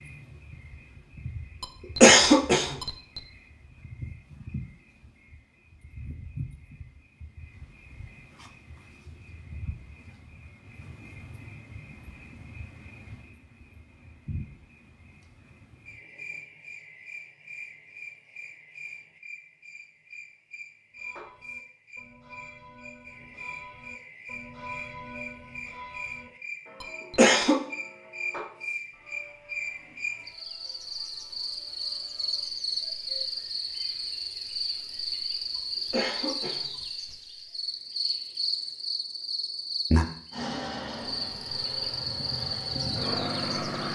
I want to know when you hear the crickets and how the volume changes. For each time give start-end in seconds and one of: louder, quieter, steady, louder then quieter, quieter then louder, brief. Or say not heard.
0.0-43.9 louder.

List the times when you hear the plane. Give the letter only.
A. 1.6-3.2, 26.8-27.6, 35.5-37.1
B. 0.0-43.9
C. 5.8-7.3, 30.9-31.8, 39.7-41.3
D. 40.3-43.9
D.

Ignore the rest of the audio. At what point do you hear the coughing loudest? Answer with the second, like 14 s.
2 s.